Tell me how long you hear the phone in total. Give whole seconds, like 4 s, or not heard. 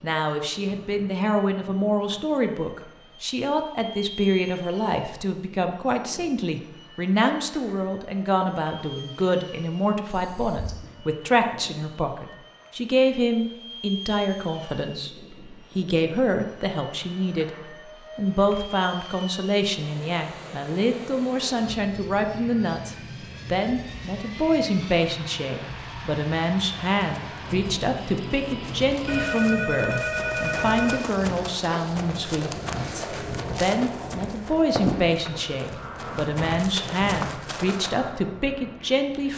3 s.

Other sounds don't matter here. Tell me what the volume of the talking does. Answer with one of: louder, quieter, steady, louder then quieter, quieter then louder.
steady.